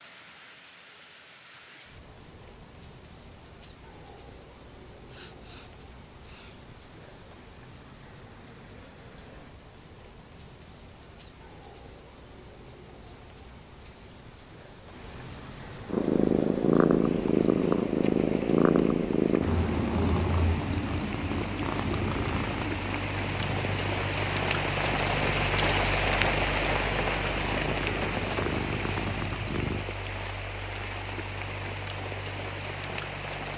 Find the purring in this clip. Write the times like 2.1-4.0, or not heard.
15.8-29.9.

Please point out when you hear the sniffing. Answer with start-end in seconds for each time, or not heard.
5.0-6.6.